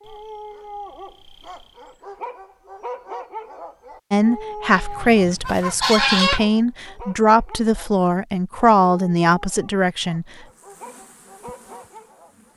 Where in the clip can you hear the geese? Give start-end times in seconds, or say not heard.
4.7-6.5.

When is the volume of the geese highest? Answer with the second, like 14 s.
6 s.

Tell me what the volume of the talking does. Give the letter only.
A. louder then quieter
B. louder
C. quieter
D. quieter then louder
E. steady
E.